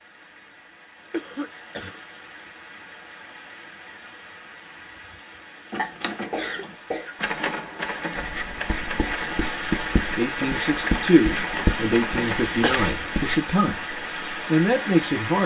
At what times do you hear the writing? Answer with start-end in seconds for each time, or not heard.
8.1-13.4.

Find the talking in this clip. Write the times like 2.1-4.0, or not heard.
10.0-15.4.